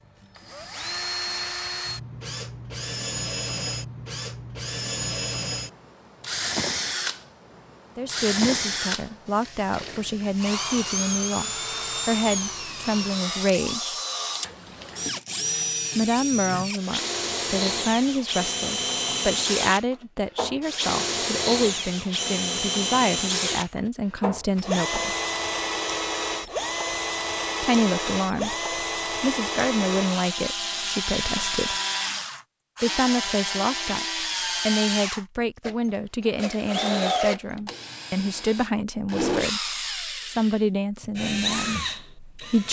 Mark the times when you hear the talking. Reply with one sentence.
You can hear the talking from 8.0 to 13.9 s, from 15.9 to 25.1 s, from 27.6 to 31.8 s and from 32.8 to 42.6 s.